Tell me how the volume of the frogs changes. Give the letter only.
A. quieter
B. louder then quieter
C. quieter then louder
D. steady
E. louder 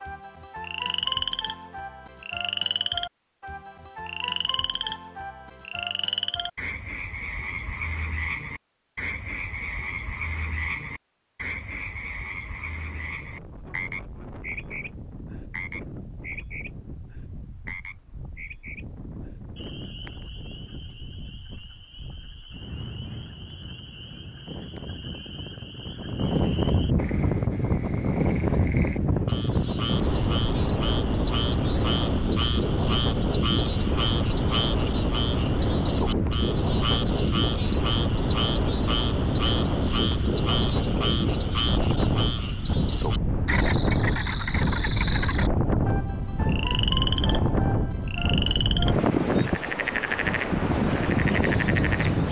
C.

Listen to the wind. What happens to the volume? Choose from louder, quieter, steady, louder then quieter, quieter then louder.
louder.